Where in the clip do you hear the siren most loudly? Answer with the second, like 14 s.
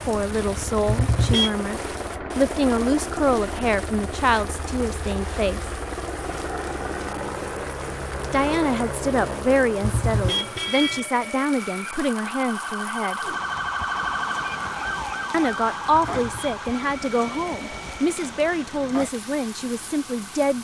14 s.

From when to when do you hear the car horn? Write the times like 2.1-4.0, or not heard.
0.8-1.6, 9.8-11.1, 15.9-16.5.